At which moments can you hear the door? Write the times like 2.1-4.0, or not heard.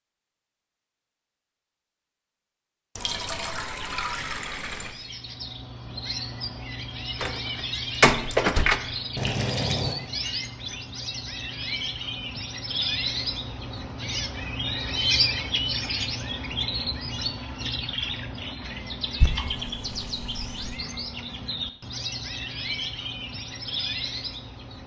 7.2-8.8.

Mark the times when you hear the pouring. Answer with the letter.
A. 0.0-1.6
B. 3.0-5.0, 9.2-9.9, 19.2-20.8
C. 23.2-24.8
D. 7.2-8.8
B.